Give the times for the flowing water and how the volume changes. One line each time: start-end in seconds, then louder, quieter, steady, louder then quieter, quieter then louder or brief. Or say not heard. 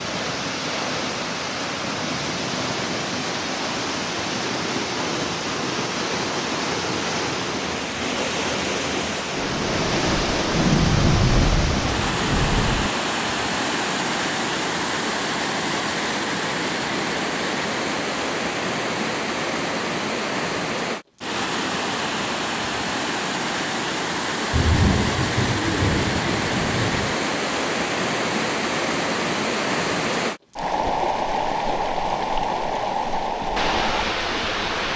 0.0-34.9 steady.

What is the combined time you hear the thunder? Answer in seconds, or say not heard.
6 s.